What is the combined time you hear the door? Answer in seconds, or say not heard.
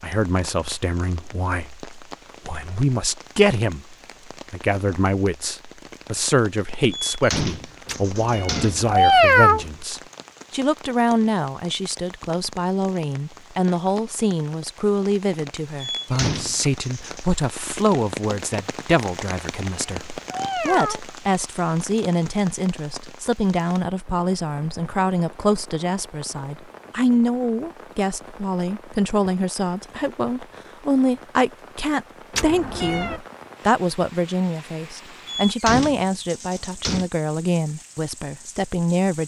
5 s.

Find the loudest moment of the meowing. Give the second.
9 s.